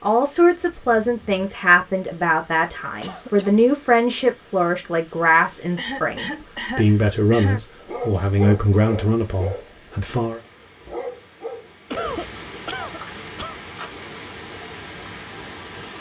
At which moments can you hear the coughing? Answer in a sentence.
The coughing can be heard from 3.0 to 3.6 s, from 5.8 to 7.6 s and from 11.9 to 13.6 s.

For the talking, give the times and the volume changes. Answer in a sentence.
You can hear the talking from 0.0 to 10.4 s, at a steady volume.